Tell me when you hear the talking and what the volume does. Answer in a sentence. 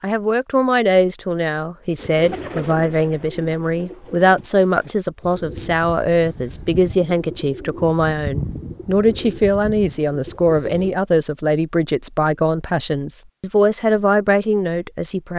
You can hear the talking from 0.0 to 15.3 s, at a steady volume.